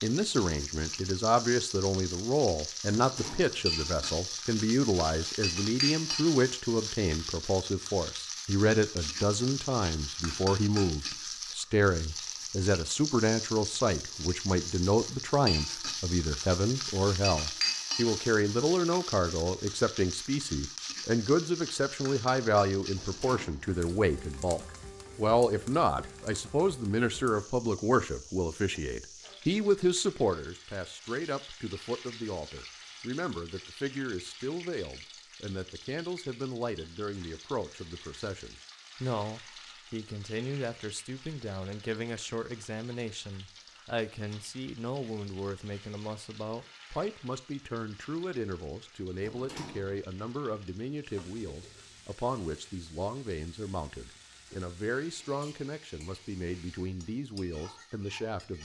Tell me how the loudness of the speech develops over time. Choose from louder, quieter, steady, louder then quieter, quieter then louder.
quieter.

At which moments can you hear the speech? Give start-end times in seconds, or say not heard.
0.0-58.6.